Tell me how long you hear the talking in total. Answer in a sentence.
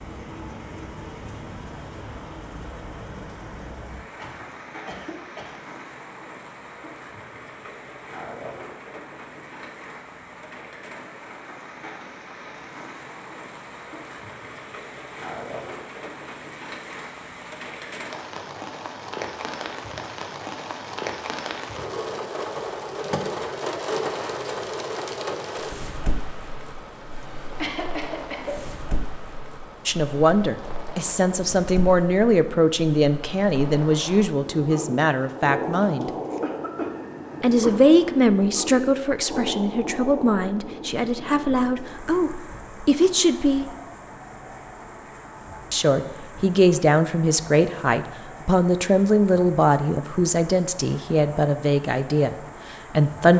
The talking can be heard for 20 seconds in total.